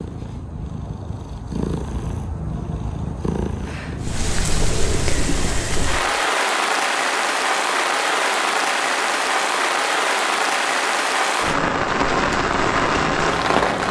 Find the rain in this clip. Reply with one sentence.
You can hear the rain from 4.0 to 13.8 s.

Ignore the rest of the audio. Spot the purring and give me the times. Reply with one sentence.
The purring can be heard from 0.0 to 5.5 s.